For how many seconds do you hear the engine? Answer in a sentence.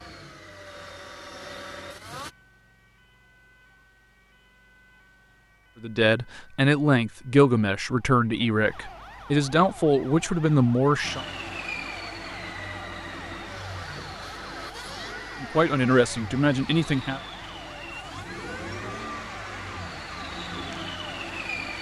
The engine can be heard for 13 seconds in total.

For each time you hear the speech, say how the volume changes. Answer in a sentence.
You can hear the speech from 5.8 to 11.2 s, at a steady volume; and briefly from 15.4 to 17.2 s.